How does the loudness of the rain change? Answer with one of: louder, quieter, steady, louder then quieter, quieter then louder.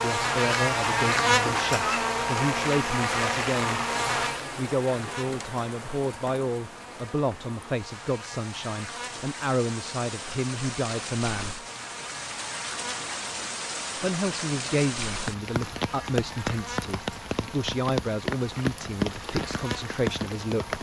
quieter then louder.